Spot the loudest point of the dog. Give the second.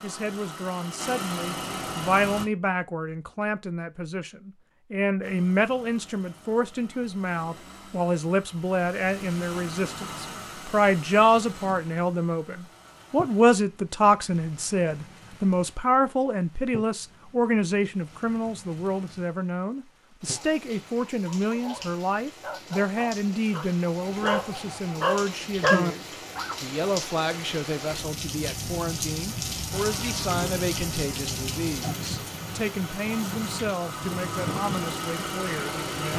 26 s.